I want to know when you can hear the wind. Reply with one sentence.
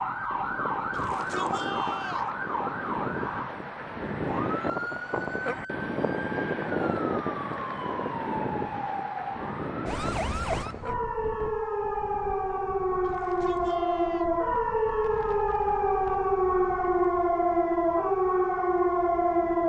The wind can be heard from 0.0 to 19.6 s.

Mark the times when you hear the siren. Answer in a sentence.
The siren can be heard from 0.0 to 19.6 s.